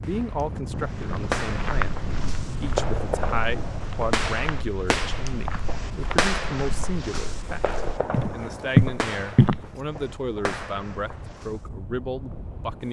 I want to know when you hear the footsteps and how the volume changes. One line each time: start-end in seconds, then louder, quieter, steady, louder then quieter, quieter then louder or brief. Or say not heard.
0.8-9.7 quieter then louder.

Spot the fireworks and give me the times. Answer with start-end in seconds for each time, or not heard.
0.0-11.7.